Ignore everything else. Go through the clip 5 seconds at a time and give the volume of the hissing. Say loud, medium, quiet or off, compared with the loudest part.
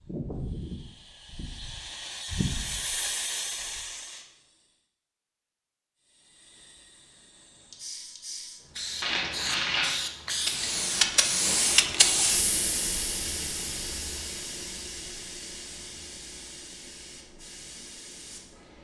medium, medium, loud, quiet.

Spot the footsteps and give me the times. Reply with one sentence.
You can't hear the footsteps here.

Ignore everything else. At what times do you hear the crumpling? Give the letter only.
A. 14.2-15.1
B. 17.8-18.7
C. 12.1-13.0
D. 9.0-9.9
D.